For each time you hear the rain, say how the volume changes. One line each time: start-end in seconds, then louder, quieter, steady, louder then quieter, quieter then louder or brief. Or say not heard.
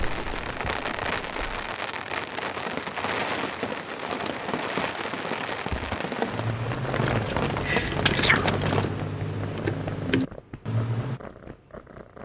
0.0-8.9 steady.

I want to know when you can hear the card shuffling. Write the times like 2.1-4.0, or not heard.
7.0-8.9.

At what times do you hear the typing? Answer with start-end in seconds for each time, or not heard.
5.7-11.2.